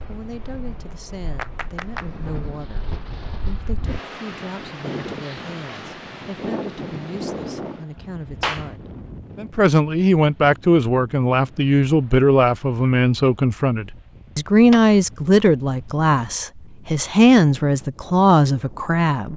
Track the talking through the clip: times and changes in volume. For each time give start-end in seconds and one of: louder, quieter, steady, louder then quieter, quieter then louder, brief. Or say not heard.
0.1-19.3 louder.